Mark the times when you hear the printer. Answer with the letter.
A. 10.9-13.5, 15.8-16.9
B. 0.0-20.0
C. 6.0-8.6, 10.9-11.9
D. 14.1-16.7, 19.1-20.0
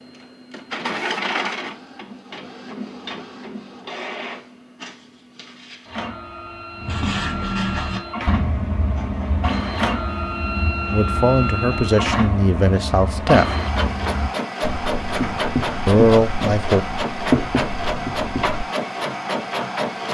B.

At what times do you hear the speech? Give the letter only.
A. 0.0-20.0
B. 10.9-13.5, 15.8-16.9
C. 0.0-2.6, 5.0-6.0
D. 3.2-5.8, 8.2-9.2
B.